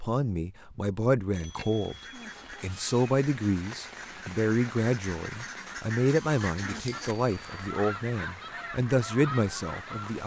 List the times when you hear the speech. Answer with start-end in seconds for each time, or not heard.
0.0-1.9, 2.6-10.2.